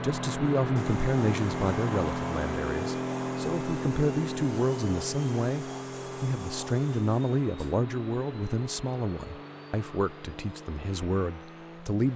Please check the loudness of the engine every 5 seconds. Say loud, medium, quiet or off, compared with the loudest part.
loud, medium, quiet.